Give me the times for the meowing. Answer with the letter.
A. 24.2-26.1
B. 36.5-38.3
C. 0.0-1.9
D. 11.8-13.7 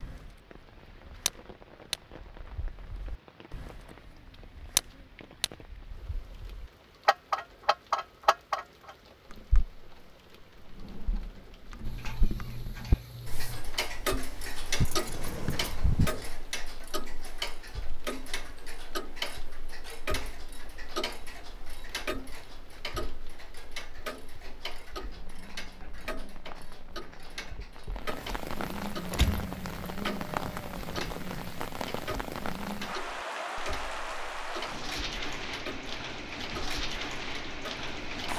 D.